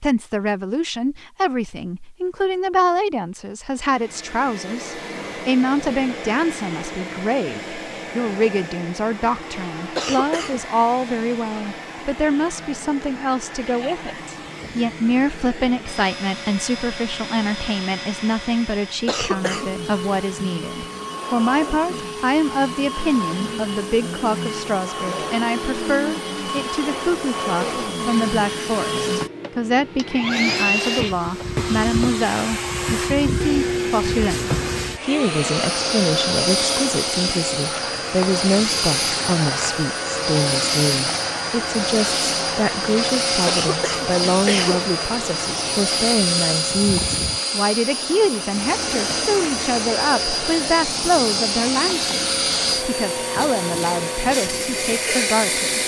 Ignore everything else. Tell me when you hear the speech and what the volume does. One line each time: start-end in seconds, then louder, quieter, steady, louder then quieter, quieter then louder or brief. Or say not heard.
0.0-55.8 steady.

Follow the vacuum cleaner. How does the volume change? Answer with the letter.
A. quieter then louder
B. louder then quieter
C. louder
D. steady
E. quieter
C.